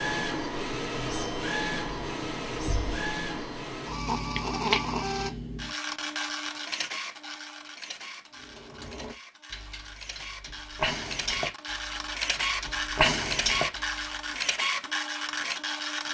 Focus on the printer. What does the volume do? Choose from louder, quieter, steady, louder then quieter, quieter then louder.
quieter then louder.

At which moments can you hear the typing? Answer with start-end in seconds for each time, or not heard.
8.4-14.4.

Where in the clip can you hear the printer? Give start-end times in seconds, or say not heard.
0.0-16.0.